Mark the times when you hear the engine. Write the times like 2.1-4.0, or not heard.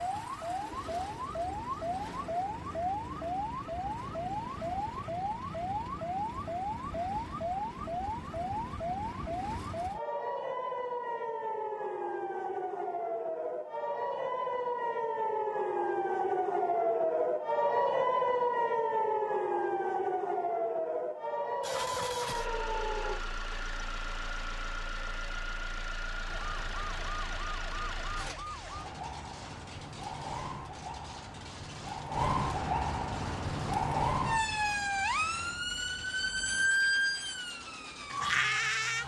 21.6-39.0.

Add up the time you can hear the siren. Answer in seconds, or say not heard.
36 s.